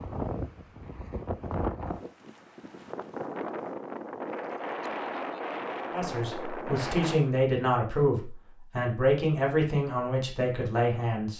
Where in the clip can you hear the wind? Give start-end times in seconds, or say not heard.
0.0-7.2.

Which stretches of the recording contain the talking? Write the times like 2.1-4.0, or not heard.
5.9-11.3.